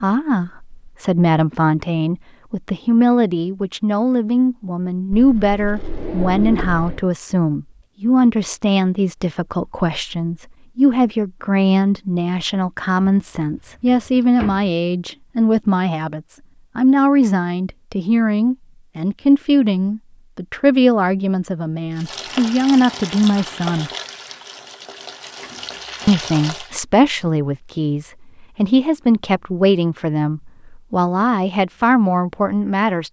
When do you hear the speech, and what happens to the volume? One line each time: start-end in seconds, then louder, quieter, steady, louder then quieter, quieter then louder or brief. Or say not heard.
0.0-23.9 steady
26.1-33.0 steady.